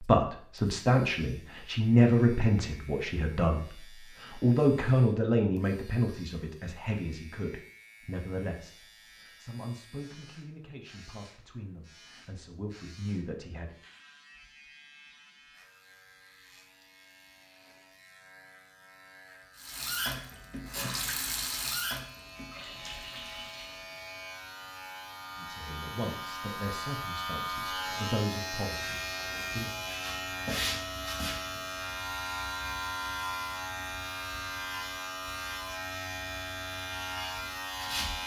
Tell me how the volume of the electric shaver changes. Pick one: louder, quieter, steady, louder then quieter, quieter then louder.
louder.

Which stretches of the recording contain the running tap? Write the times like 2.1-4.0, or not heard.
19.6-24.0.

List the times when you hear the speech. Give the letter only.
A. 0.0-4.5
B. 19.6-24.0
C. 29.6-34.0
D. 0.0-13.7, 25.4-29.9
D.